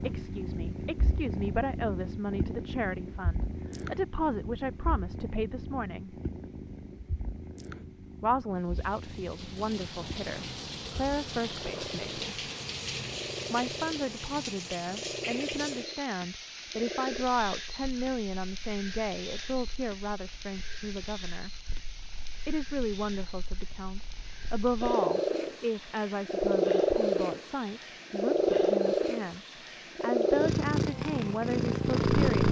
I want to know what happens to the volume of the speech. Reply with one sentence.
The volume of the speech stays about the same.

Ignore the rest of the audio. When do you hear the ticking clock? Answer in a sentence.
The ticking clock can't be heard in this clip.